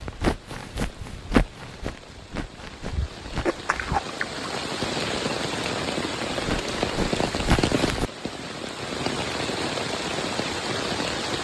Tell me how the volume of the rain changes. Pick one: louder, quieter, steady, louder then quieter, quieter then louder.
louder.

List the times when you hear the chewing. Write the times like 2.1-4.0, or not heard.
2.9-4.7.